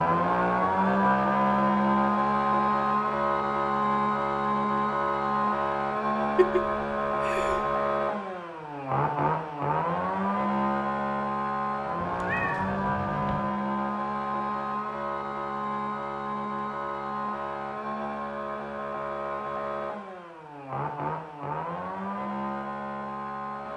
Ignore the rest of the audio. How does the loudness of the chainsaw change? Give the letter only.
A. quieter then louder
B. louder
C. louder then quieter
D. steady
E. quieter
E.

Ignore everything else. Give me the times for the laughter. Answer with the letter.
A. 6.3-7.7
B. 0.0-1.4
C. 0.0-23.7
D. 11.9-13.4
A.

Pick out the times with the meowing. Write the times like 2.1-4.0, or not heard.
11.9-13.4.